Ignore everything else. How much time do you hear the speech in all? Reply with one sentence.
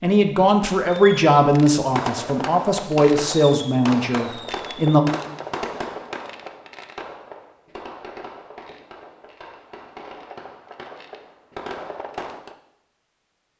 The speech can be heard for 5 seconds in total.